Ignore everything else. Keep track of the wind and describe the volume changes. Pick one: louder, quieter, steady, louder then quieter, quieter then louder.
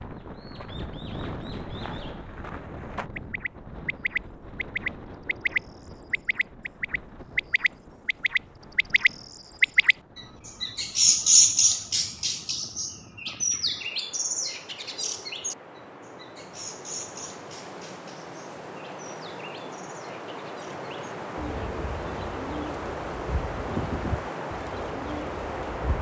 quieter then louder.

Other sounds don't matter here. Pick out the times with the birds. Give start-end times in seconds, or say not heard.
0.0-25.9.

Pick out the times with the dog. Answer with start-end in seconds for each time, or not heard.
not heard.